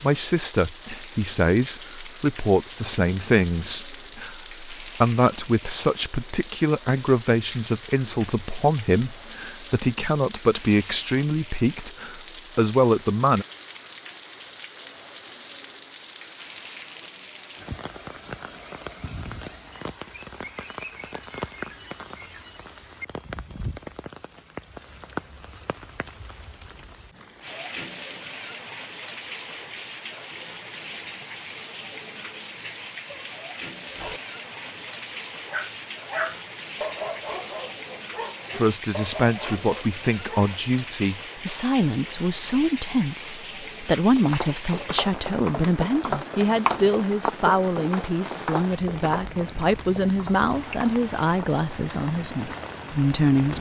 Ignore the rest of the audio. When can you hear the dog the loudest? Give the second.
36 s.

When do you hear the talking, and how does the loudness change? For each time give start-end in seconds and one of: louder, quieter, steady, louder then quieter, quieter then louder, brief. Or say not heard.
0.0-13.4 steady
38.5-53.5 steady.